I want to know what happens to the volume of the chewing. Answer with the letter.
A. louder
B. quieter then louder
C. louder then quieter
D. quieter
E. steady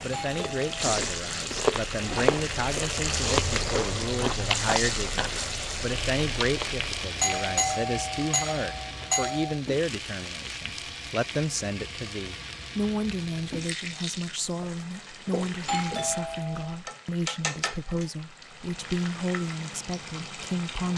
D.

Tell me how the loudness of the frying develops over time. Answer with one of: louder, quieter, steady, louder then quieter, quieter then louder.
quieter.